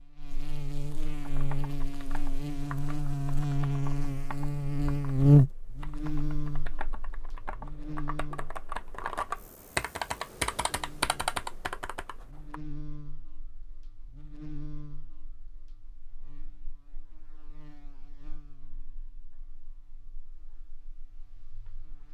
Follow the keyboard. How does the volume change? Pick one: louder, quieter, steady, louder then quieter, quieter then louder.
louder.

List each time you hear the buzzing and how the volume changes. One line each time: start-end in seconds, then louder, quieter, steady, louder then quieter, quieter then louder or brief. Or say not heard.
0.0-22.1 louder then quieter.